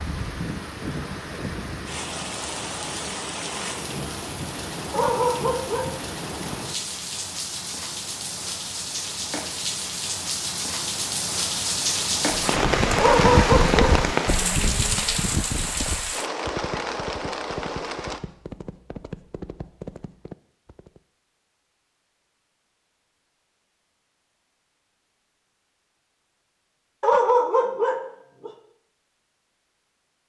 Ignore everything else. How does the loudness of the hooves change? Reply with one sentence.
The volume of the hooves goes down.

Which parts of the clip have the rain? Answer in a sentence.
The rain can be heard from 0.0 to 18.2 s.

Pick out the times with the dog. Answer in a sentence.
You can hear the dog from 4.9 to 6.4 s, from 12.9 to 14.4 s and from 27.0 to 28.5 s.